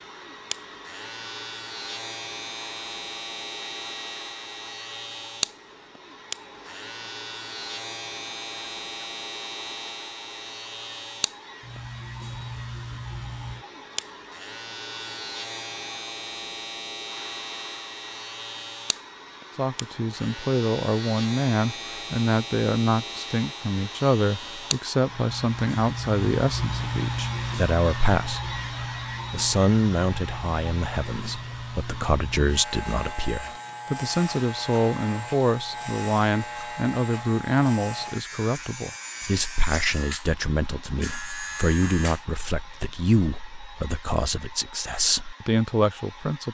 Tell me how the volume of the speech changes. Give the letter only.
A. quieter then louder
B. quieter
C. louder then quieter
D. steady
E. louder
D.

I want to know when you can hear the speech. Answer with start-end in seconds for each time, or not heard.
19.6-28.5, 29.3-46.4.